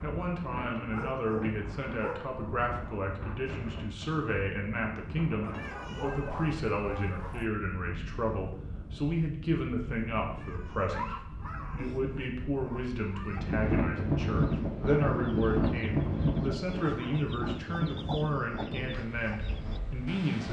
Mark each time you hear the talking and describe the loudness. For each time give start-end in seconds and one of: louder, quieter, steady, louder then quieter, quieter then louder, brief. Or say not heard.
0.0-20.4 steady.